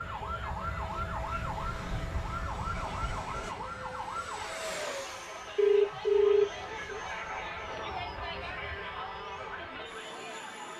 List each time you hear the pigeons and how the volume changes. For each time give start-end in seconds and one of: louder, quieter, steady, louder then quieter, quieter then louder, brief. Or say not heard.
not heard.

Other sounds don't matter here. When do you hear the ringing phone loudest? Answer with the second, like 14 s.
6 s.